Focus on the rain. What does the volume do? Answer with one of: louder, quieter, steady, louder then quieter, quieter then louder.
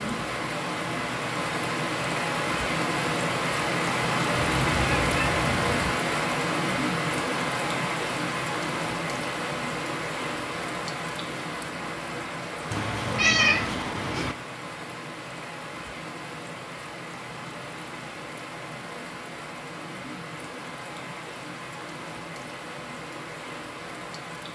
quieter.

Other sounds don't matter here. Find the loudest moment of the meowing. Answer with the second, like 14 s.
13 s.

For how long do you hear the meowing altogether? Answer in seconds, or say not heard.
3 s.